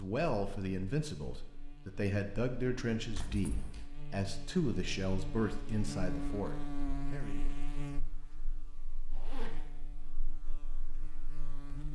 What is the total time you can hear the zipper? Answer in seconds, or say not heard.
2 s.